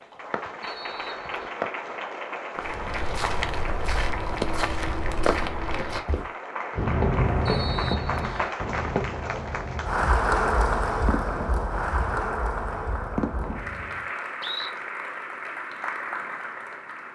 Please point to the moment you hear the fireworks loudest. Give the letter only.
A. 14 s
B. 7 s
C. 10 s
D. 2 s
B.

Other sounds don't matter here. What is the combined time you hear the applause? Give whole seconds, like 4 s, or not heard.
17 s.